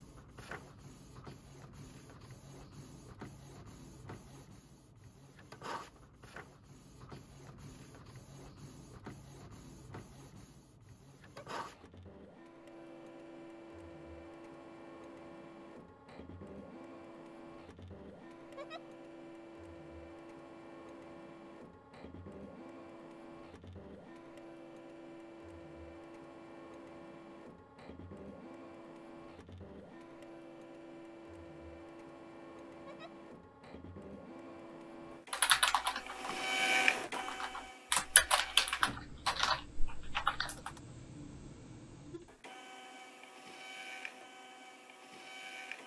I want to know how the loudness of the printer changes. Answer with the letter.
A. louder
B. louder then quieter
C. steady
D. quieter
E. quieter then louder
A.